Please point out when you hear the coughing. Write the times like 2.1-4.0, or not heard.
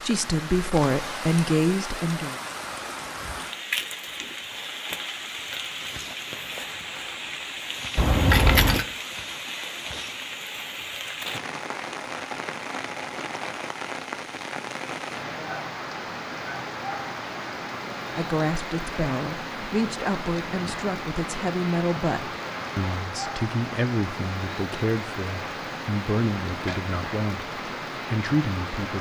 not heard.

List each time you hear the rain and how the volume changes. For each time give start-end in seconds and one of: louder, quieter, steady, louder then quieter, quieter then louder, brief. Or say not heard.
0.0-28.9 steady.